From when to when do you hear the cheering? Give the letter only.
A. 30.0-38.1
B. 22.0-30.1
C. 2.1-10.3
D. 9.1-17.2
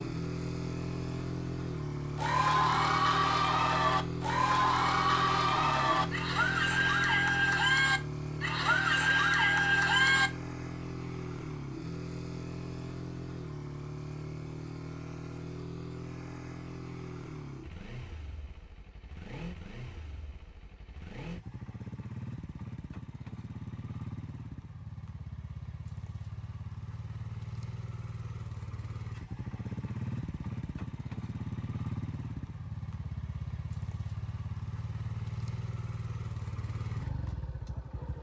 C.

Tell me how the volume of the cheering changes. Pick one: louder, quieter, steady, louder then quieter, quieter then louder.
steady.